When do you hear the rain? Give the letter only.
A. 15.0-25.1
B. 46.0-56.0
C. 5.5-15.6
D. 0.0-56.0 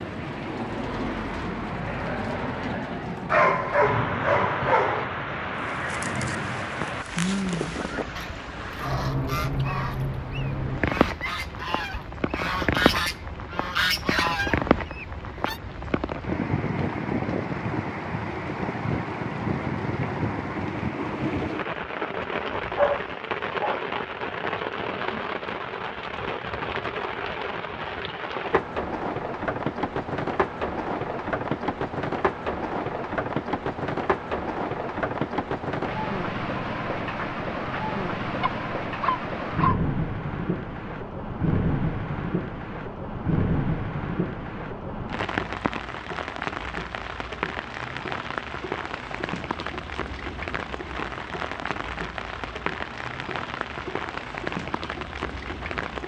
D.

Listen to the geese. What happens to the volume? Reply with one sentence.
The volume of the geese goes up.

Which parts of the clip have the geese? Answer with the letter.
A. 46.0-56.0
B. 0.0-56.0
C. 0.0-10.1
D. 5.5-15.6
D.